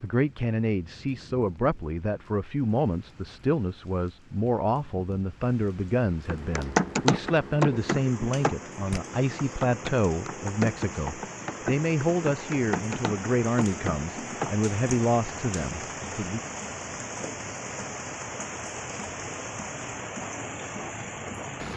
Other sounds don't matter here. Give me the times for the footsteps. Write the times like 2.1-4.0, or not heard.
not heard.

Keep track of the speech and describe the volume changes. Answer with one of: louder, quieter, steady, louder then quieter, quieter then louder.
steady.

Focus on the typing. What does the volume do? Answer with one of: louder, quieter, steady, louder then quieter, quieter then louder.
quieter.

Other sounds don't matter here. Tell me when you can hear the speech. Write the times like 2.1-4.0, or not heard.
0.0-16.4.